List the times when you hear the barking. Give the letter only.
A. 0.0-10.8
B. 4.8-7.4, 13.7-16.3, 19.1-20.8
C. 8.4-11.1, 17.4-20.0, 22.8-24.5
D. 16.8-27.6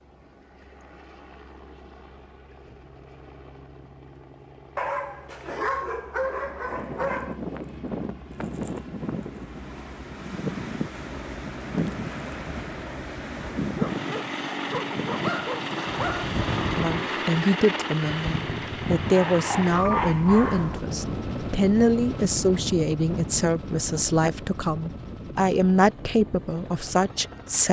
B.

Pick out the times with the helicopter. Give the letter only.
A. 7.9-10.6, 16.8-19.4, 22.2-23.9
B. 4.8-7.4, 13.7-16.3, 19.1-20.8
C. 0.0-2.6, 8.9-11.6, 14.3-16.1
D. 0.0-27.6
D.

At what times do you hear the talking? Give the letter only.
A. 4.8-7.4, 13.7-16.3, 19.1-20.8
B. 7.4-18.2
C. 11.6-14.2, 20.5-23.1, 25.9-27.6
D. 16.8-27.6
D.